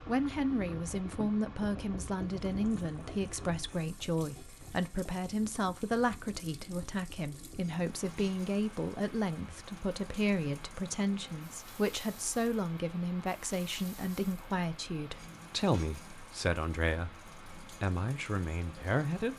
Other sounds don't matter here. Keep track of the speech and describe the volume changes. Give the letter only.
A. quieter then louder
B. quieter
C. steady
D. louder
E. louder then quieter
C.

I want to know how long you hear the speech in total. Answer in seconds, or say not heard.
19 s.